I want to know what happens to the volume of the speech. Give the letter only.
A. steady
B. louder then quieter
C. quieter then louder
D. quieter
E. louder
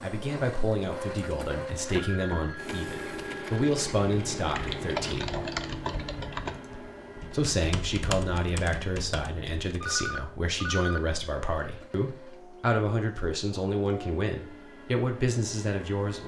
A.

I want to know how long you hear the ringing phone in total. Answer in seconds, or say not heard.
3 s.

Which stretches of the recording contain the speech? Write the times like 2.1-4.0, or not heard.
0.0-5.3, 7.3-16.2.